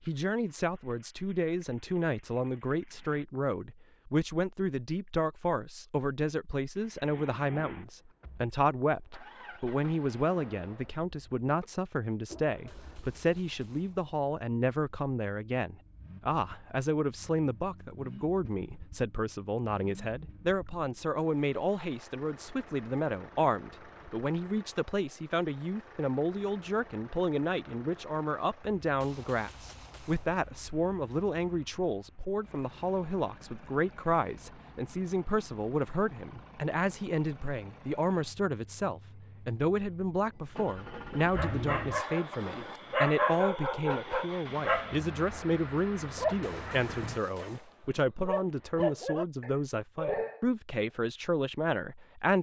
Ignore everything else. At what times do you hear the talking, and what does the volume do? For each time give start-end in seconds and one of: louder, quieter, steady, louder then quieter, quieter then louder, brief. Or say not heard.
0.1-52.3 steady.